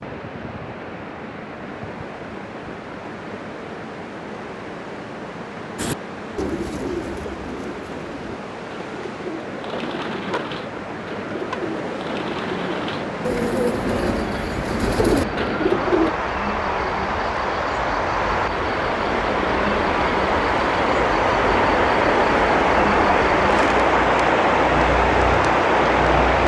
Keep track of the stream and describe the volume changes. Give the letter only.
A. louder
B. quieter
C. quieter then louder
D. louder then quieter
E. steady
A.